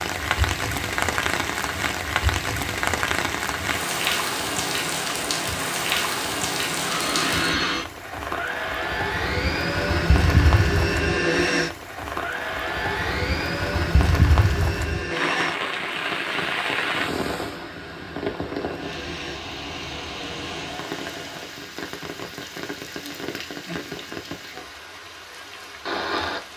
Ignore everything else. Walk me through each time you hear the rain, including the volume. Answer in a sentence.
The rain can be heard from 0.0 to 26.5 s, getting quieter.